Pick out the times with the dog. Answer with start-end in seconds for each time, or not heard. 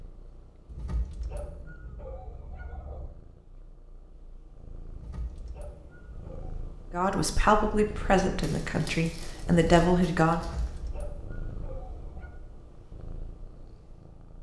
0.7-3.1, 4.9-6.7, 10.3-12.4.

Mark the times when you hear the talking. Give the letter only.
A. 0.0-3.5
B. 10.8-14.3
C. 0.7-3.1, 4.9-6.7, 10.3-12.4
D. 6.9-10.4
D.